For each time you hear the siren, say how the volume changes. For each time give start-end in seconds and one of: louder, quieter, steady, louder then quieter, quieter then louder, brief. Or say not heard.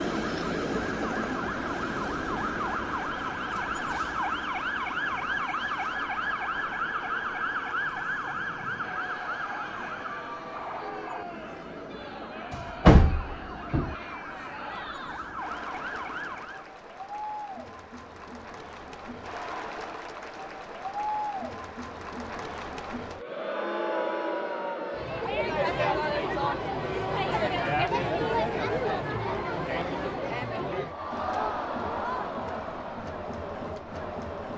0.0-16.7 quieter.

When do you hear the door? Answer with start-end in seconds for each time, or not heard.
12.5-13.9.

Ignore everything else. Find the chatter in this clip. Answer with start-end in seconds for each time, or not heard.
8.8-34.5.